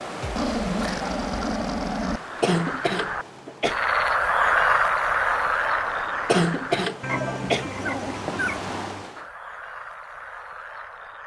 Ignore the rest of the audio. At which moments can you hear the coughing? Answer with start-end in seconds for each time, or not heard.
2.4-3.8, 6.2-7.7.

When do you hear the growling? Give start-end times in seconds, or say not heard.
0.2-2.2, 7.1-8.7.